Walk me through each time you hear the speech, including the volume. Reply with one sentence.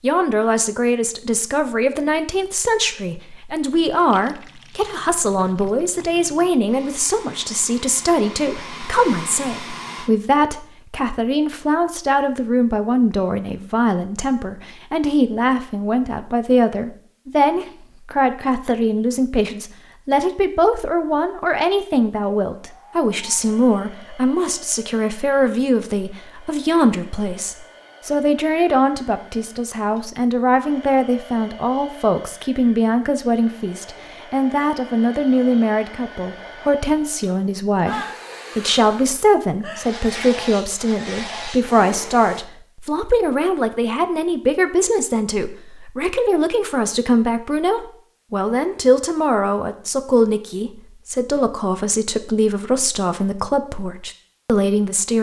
The speech can be heard from 0.0 to 55.1 s, at a steady volume.